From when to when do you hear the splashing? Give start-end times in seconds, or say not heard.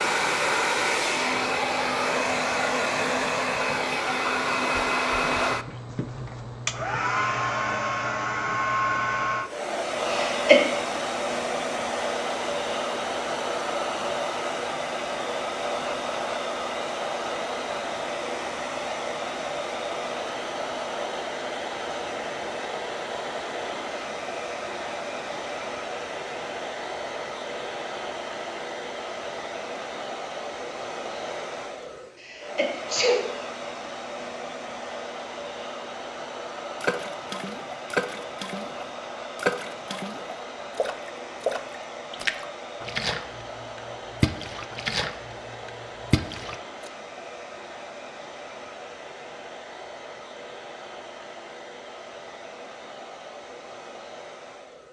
36.8-46.9.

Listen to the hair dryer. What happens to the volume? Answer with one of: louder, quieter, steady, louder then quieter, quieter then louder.
quieter.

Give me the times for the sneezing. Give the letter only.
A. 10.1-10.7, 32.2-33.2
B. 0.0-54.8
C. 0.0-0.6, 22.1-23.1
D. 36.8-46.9
A.